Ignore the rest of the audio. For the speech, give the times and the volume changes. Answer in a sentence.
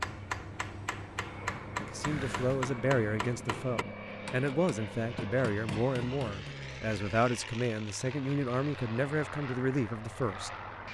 You can hear the speech from 1.8 to 10.5 s, at a steady volume.